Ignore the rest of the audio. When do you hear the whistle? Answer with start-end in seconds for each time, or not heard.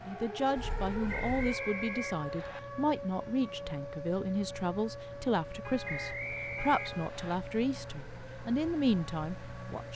1.1-2.6, 5.8-7.4.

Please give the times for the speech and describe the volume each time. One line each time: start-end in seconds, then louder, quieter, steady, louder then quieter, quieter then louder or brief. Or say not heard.
0.1-9.9 steady.